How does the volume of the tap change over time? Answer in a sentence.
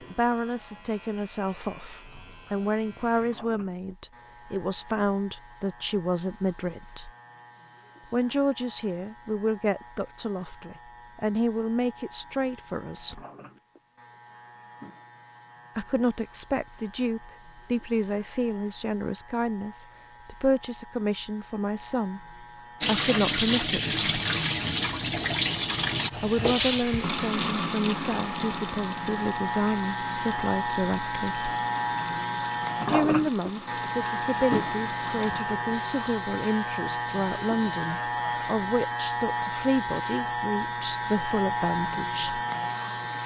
The volume of the tap goes down.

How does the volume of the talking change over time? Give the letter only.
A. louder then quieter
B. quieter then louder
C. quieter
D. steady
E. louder
D.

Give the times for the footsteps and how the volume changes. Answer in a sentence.
The footsteps can't be heard in this clip.